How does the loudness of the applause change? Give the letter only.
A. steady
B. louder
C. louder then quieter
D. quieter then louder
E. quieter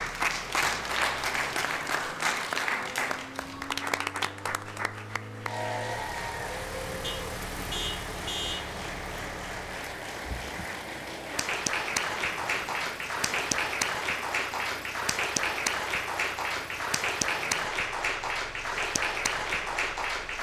D.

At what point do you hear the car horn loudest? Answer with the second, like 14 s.
8 s.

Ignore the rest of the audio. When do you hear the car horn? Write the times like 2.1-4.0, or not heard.
7.0-8.8.